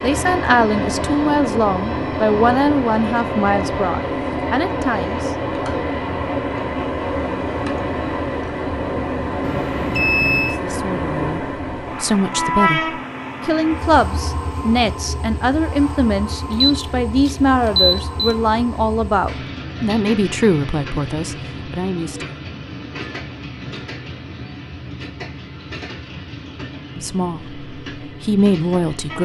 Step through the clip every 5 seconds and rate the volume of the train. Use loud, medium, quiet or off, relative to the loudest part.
loud, loud, loud, medium, medium, medium.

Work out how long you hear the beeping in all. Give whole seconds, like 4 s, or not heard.
3 s.